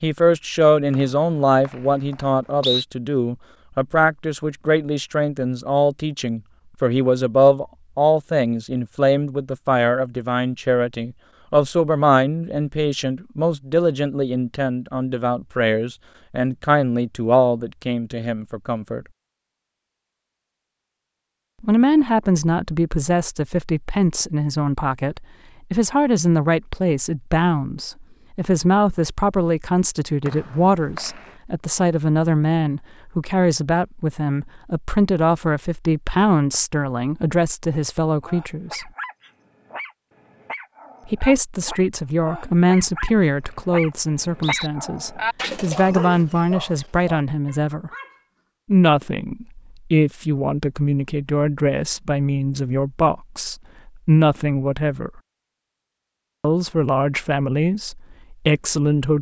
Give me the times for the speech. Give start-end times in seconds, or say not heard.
0.0-19.1, 21.6-38.9, 41.0-47.9, 48.6-55.2, 56.4-59.1.